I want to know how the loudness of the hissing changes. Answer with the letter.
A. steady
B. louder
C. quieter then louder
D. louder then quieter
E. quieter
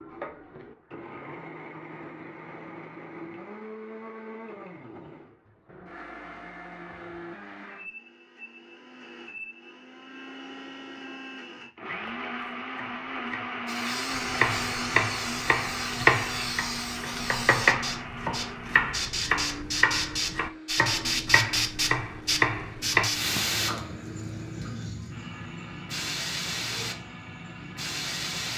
D.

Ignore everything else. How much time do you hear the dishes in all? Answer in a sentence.
The dishes can't be heard in this clip.